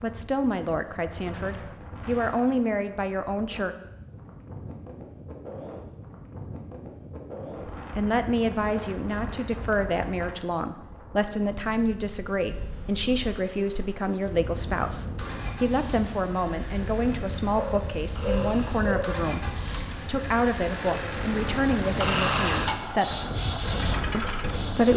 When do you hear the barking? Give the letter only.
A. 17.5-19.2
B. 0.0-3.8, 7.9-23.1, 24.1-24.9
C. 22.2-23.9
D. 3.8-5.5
A.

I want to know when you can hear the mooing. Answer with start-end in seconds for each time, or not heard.
not heard.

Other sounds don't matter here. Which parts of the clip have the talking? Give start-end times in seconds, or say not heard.
0.0-3.8, 7.9-23.1, 24.1-24.9.